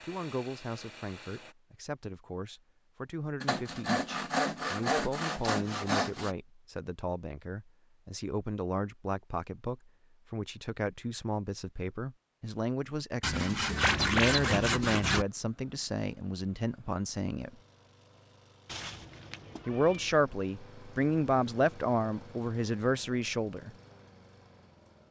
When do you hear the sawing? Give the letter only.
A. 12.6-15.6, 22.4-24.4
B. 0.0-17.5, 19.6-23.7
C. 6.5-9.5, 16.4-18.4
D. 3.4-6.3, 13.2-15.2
D.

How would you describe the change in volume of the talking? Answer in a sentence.
The loudness of the talking goes up.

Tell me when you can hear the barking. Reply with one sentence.
You can't hear the barking here.